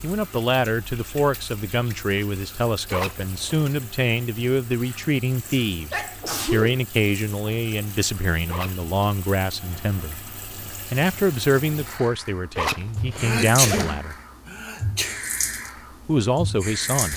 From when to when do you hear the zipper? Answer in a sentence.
The zipper can be heard from 2.9 to 3.7 s, from 8.4 to 8.8 s and from 12.6 to 13.9 s.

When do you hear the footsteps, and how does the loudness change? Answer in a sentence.
The footsteps can't be heard in this clip.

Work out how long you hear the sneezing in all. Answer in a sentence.
The sneezing can be heard for 3 seconds in total.